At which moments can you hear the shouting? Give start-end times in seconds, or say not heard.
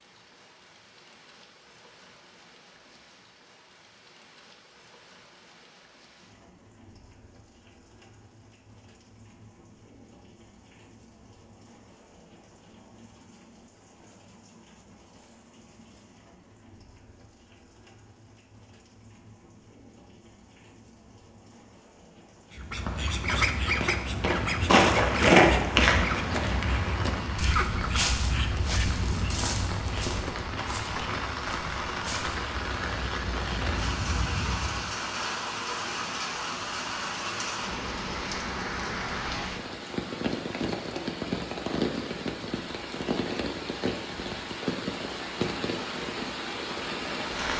not heard.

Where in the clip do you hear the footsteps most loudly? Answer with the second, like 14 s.
25 s.